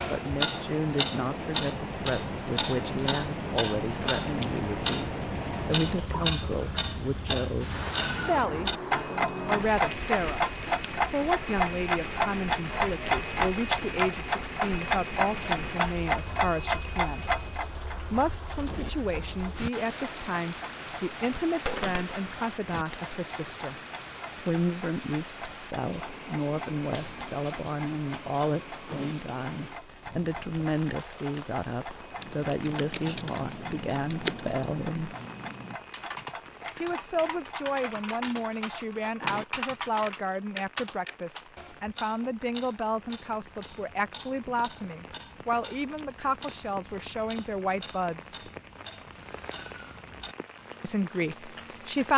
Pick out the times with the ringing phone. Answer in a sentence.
The ringing phone can be heard from 21.6 to 22.1 s.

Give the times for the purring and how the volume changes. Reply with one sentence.
You can't hear the purring here.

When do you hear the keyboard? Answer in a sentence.
You can hear the keyboard from 32.1 to 41.5 s.